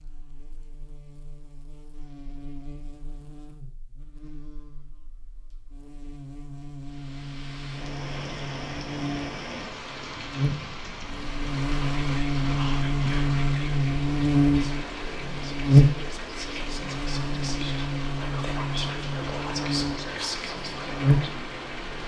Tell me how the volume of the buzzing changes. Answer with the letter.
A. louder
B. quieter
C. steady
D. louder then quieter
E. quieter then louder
D.